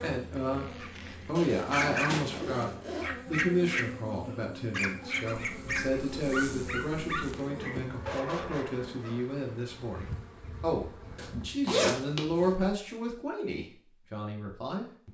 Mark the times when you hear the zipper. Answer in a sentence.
The zipper can be heard from 1.4 to 3.1 s, from 5.3 to 7.3 s and from 11.2 to 12.6 s.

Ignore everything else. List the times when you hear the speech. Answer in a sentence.
You can hear the speech from 0.0 to 15.0 s.